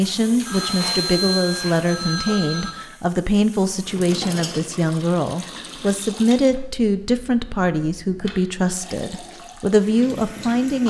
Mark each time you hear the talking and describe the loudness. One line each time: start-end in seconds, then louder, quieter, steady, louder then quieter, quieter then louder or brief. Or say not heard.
0.0-10.8 steady.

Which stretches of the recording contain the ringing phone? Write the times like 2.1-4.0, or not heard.
0.5-2.8, 6.5-8.4.